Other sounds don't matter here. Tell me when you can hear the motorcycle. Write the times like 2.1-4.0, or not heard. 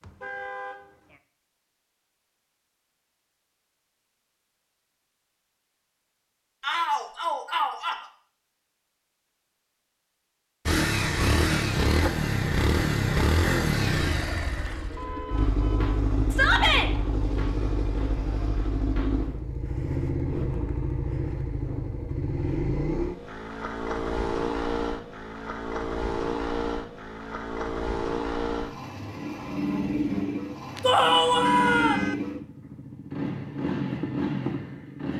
10.7-35.1.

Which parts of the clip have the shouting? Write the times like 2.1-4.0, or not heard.
6.6-8.0, 16.3-16.9, 30.8-32.0.